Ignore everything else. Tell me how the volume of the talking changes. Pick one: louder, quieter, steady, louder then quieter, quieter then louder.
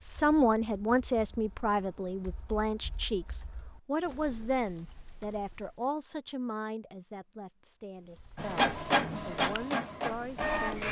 quieter.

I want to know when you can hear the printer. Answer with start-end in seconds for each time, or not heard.
8.3-10.8.